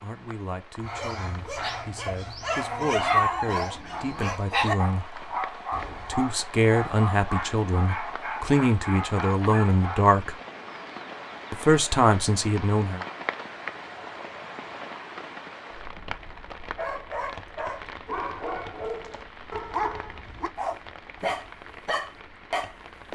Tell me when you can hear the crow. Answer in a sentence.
You can't hear the crow here.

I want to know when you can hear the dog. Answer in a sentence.
The dog can be heard from 0.8 to 10.1 s and from 16.8 to 23.1 s.